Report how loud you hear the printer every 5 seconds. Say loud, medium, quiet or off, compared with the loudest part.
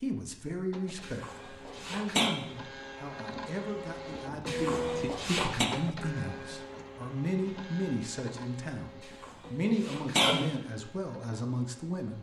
loud, loud, quiet.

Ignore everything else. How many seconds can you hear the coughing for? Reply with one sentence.
The coughing can be heard for 4 seconds in total.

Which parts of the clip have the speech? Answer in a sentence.
The speech can be heard from 0.0 to 12.1 s.